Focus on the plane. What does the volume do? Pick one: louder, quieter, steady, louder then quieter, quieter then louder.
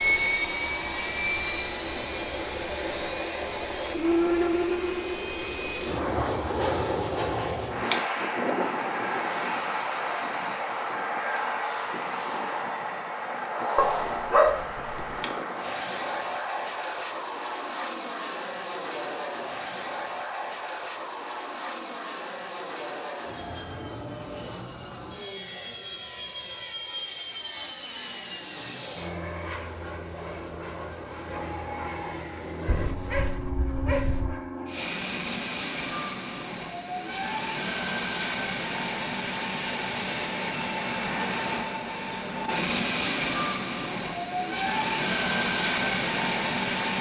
quieter then louder.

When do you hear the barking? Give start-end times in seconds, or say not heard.
13.8-15.2, 32.6-34.4.